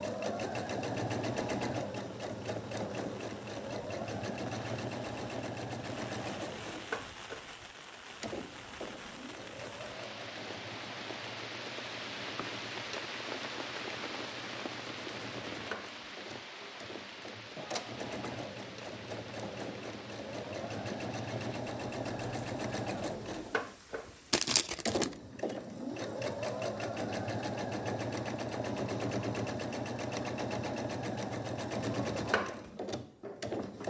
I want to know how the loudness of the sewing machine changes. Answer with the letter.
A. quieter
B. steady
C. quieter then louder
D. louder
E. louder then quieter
C.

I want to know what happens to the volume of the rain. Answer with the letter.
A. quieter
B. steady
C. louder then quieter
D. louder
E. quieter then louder
C.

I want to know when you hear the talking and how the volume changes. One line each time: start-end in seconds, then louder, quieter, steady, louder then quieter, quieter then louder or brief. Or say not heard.
not heard.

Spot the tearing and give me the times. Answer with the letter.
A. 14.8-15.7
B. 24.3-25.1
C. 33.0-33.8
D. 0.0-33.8
B.